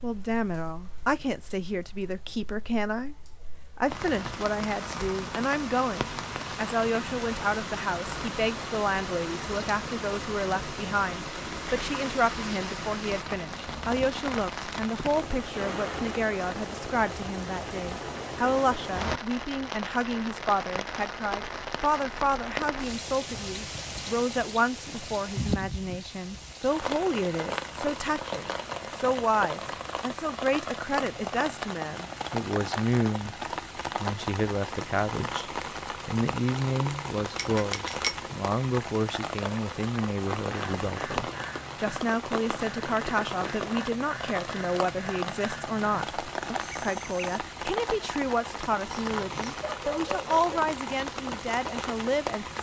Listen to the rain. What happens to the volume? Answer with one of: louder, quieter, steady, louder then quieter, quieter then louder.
steady.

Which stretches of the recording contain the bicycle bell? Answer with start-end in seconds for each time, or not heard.
37.4-38.1.